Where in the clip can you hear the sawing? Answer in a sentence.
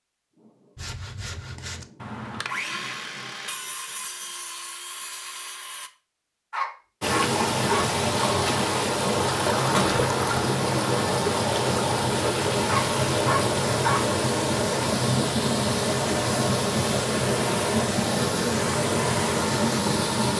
The sawing can be heard from 0.8 to 5.9 s.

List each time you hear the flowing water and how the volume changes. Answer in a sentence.
The flowing water can be heard from 7.0 to 20.3 s, at a steady volume.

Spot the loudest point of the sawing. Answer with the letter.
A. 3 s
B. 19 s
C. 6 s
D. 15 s
A.